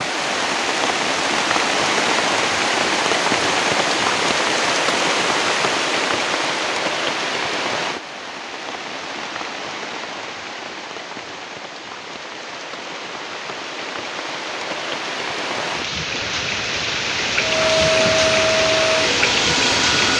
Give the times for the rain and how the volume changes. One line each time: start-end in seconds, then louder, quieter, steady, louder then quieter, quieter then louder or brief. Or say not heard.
0.0-20.1 quieter then louder.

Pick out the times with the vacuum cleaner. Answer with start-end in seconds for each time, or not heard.
17.4-20.1.